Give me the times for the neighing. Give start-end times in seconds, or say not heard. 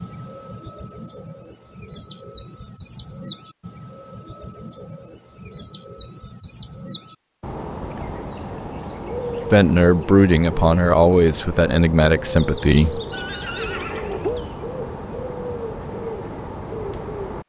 13.1-14.4.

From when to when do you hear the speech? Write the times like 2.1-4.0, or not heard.
9.5-13.0.